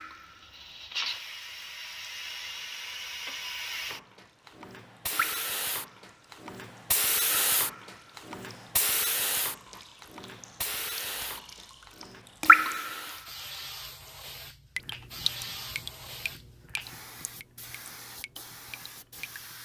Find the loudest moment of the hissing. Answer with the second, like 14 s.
7 s.